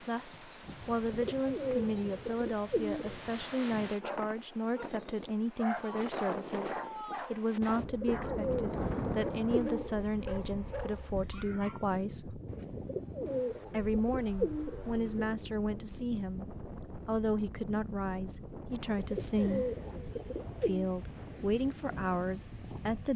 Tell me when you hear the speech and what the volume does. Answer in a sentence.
The speech can be heard from 0.1 to 12.4 s, at a steady volume; briefly from 13.7 to 16.4 s; briefly from 17.1 to 19.6 s; and briefly from 20.6 to 23.1 s.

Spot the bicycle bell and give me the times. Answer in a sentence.
You can't hear the bicycle bell here.